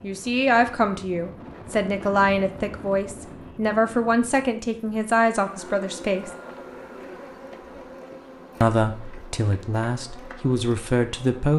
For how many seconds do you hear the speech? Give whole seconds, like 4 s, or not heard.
9 s.